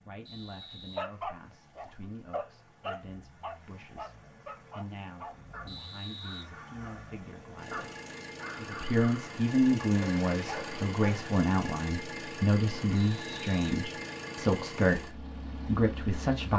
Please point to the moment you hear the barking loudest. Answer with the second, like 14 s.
1 s.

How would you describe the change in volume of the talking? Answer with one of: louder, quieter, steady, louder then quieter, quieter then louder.
louder.